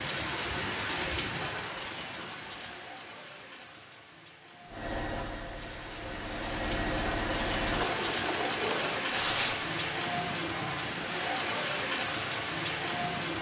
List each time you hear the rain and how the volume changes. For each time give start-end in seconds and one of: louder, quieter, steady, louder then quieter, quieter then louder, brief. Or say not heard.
0.0-13.3 quieter then louder.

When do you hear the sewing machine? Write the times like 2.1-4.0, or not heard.
4.7-9.1.